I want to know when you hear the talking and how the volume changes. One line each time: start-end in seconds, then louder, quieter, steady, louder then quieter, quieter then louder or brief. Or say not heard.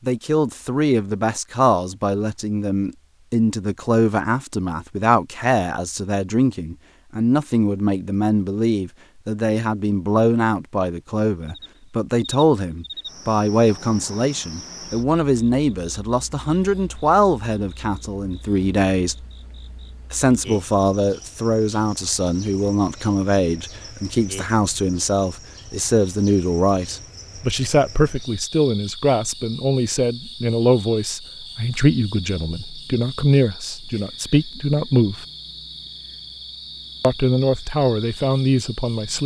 0.1-19.1 steady
20.1-35.2 steady
37.0-39.2 brief.